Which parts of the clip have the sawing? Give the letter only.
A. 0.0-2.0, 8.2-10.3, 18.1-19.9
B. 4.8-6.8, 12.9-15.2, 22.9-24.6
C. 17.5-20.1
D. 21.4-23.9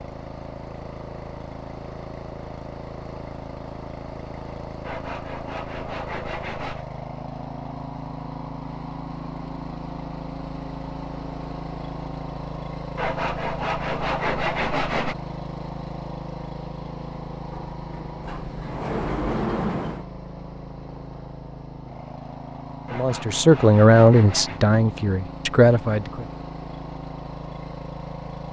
B.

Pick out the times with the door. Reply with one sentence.
The door can be heard from 17.5 to 20.1 s.